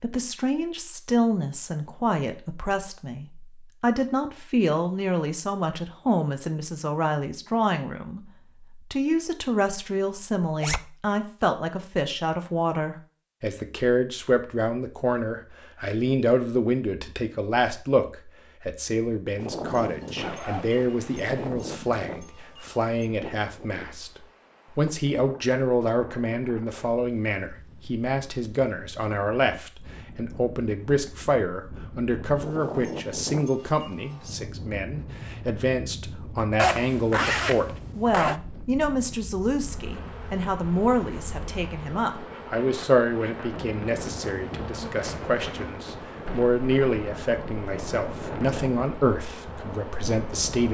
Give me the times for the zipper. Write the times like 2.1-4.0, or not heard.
10.4-10.8, 20.1-21.5, 36.5-38.4.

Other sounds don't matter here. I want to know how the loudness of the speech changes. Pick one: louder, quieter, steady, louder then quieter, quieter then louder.
steady.